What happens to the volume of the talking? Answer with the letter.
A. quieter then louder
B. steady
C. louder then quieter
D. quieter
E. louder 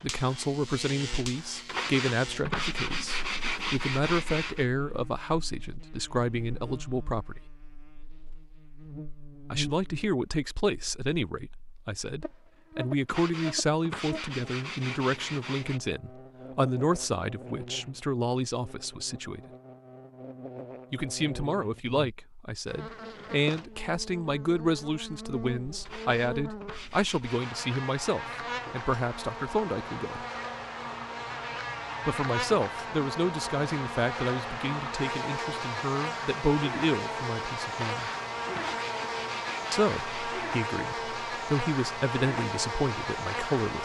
B.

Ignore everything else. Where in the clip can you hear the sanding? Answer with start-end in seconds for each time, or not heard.
1.6-4.7, 13.1-15.8, 25.9-27.6, 37.8-40.4.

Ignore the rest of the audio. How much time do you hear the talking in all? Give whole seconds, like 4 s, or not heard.
37 s.